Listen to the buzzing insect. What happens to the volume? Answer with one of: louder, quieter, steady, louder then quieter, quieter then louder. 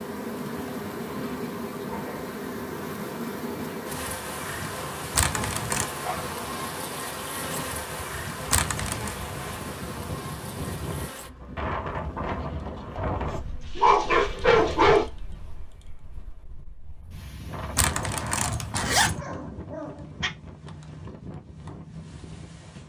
quieter.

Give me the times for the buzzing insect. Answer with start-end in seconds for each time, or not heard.
0.0-13.8.